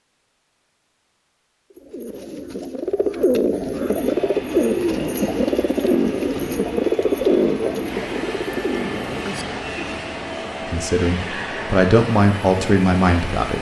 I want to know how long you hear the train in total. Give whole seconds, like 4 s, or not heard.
10 s.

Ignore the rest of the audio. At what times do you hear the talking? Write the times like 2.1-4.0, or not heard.
10.7-13.5.